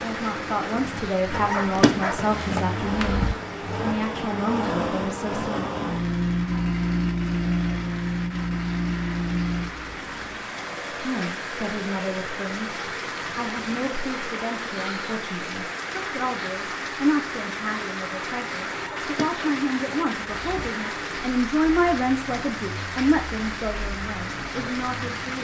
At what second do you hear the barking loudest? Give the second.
2 s.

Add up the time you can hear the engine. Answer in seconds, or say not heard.
25 s.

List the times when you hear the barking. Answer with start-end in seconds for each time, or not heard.
1.3-3.4, 18.7-20.7.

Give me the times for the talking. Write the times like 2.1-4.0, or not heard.
0.0-5.8, 10.9-25.3.